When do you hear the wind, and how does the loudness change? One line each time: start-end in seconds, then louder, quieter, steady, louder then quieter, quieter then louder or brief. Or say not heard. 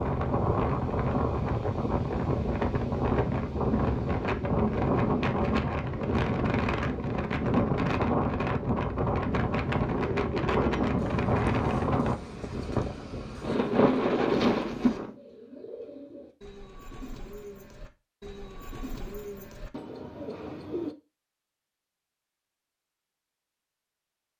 0.0-15.2 steady.